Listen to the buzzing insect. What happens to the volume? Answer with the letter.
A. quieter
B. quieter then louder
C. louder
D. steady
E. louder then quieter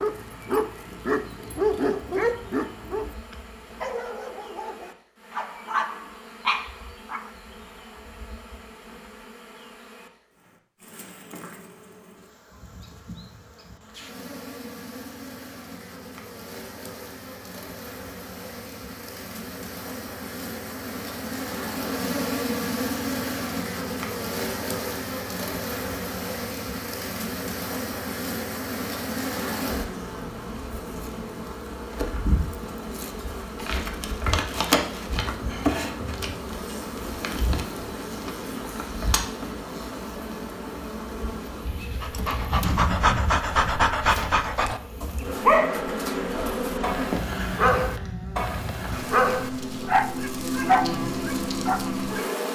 C.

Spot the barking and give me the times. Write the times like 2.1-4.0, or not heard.
0.0-7.3, 42.0-52.2.